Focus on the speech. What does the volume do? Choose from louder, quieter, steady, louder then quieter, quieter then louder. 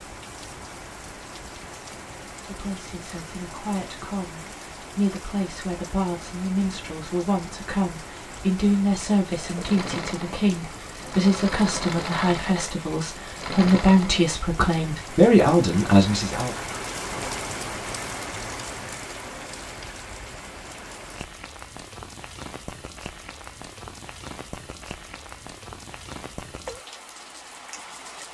louder.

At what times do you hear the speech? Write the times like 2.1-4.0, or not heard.
2.5-16.5.